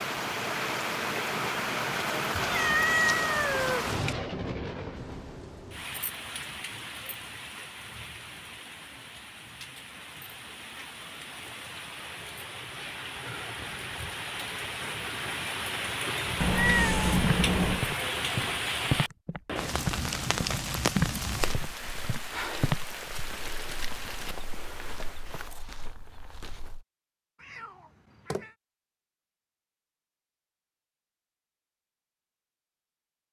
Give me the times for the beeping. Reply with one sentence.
The beeping can't be heard in this clip.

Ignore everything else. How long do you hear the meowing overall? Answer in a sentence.
You can hear the meowing for 4 seconds altogether.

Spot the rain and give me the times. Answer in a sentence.
You can hear the rain from 0.0 to 25.4 s.